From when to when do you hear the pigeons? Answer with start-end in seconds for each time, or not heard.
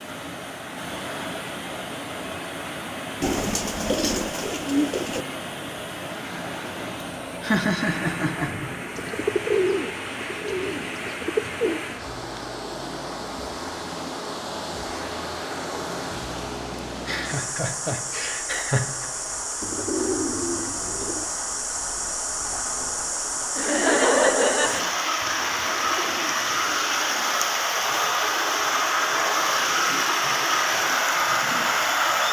3.2-5.2, 8.9-11.8, 19.6-21.2, 25.2-26.9.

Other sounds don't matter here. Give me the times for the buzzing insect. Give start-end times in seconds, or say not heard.
not heard.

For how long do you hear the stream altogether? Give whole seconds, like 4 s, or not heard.
32 s.